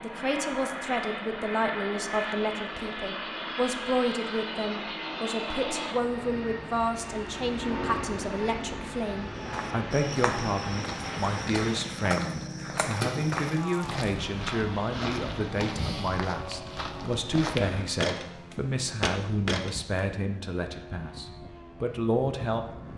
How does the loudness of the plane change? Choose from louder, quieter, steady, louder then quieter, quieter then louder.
quieter.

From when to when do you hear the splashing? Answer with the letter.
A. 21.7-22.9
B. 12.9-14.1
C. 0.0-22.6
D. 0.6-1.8
B.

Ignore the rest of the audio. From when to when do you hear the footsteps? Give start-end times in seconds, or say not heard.
9.4-19.8.